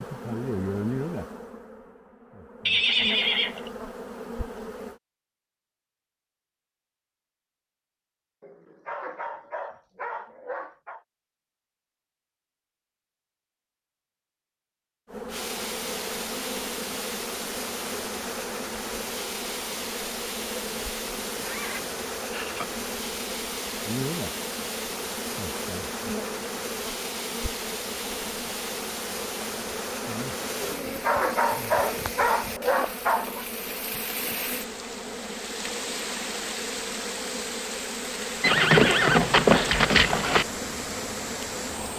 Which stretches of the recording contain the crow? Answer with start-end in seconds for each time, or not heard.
not heard.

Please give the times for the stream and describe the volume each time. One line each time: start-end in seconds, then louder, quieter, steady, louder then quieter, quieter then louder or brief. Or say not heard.
15.2-41.9 steady.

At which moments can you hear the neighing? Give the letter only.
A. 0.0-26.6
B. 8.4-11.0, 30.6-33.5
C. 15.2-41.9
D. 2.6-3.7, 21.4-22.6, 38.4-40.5
D.